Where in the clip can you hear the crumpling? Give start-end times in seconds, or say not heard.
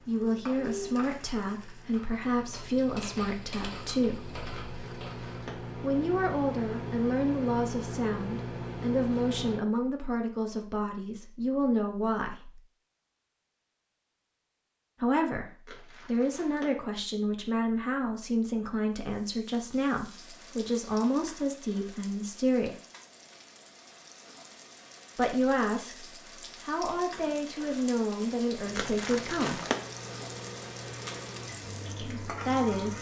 4.6-5.5, 15.7-16.7, 28.8-29.8.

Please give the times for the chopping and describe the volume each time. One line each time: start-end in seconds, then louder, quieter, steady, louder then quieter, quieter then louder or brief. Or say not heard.
not heard.